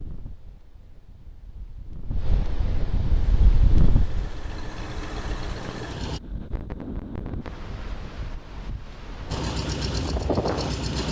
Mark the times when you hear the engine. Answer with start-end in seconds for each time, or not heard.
3.4-6.2, 9.2-11.0.